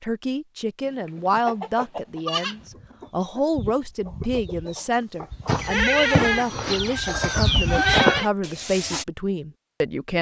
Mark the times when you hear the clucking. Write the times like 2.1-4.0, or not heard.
1.3-9.1.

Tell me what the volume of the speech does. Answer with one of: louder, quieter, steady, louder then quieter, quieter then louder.
steady.